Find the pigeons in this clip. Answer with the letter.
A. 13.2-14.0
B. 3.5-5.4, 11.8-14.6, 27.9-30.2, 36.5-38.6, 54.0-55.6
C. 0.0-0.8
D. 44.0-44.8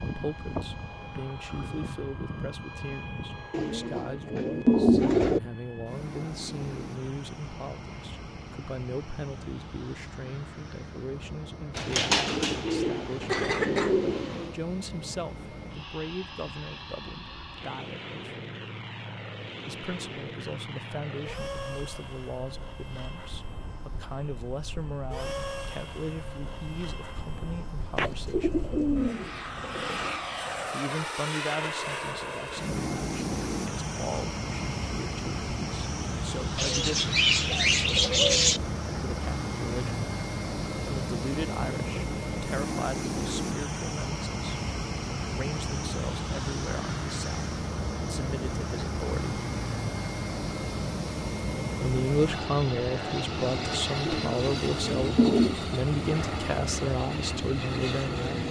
B.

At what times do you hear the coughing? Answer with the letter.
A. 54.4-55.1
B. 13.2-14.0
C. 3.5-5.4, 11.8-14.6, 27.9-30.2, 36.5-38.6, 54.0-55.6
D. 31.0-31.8
B.